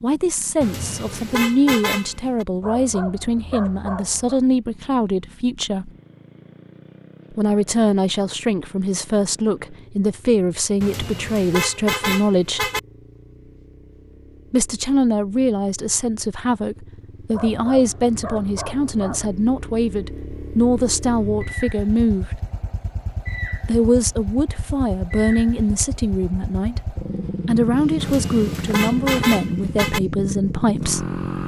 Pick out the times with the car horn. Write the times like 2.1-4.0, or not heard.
0.6-2.5, 10.8-12.8, 28.0-30.0.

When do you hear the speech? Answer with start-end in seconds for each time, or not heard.
0.0-5.9, 7.3-12.7, 14.5-22.4, 23.6-31.1.